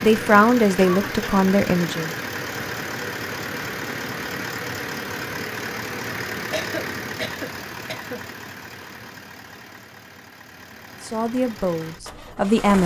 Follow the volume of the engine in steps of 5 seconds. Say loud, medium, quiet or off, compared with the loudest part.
loud, loud, medium.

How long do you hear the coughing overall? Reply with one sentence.
The coughing can be heard for 2 seconds in total.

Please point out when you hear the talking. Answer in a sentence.
The talking can be heard from 0.0 to 2.1 s and from 11.0 to 12.8 s.